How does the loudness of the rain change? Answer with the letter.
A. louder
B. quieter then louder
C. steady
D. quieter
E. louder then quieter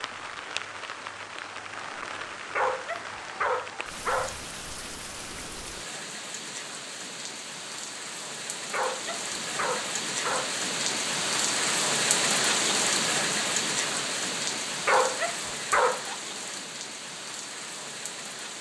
E.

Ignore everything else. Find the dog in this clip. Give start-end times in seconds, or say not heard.
2.5-4.4, 8.7-10.6, 14.8-16.3.